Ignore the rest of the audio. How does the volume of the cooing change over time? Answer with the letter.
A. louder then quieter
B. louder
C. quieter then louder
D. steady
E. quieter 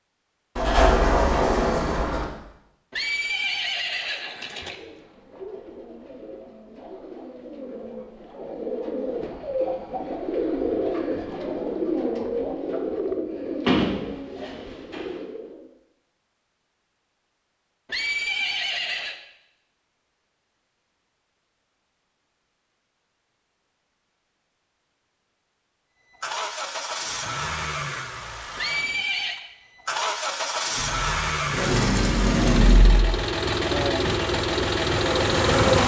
A.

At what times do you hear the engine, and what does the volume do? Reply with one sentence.
You can hear the engine from 26.1 to 35.8 s, getting louder.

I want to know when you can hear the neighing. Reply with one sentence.
The neighing can be heard from 2.9 to 4.8 s, from 17.9 to 19.2 s and from 28.6 to 29.4 s.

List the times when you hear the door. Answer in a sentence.
The door can be heard from 0.6 to 2.2 s, from 13.7 to 15.2 s and from 30.8 to 33.1 s.